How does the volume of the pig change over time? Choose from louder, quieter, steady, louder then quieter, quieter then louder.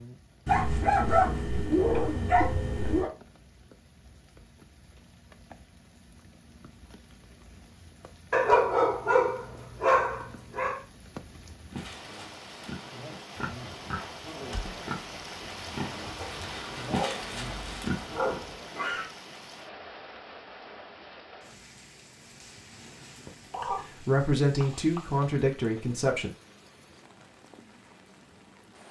louder.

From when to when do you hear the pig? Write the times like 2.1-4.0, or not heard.
11.7-19.1.